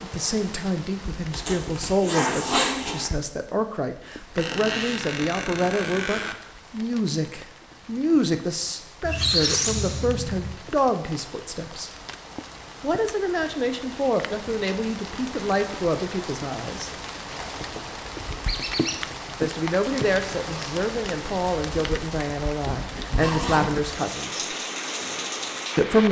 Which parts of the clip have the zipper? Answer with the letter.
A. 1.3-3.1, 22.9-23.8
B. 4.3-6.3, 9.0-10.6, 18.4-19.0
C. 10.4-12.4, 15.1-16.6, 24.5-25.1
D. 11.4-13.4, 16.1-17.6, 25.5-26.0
A.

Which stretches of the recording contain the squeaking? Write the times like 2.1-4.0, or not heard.
4.3-6.3, 9.0-10.6, 18.4-19.0.